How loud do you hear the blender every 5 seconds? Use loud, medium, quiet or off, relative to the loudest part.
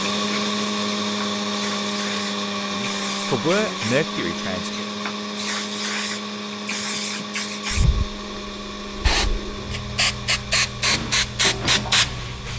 loud, medium, medium.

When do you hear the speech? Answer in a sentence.
The speech can be heard from 2.7 to 4.8 s.